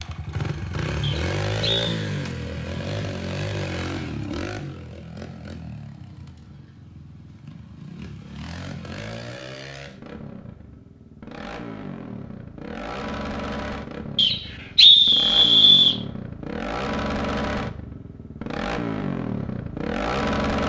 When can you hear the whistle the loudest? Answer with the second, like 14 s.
15 s.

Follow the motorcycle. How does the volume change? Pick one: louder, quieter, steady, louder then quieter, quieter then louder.
quieter then louder.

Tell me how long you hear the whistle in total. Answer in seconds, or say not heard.
3 s.